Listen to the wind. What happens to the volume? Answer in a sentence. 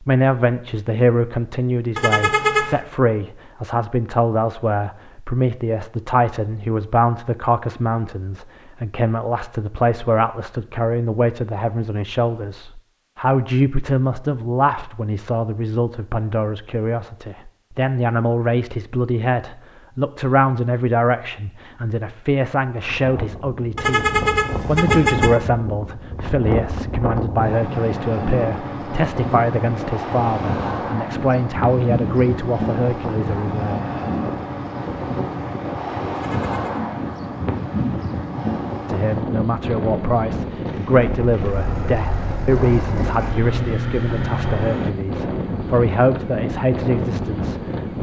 The loudness of the wind stays about the same.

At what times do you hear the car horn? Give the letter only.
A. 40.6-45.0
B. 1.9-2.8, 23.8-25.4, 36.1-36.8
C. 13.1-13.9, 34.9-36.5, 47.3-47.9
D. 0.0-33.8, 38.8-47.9
B.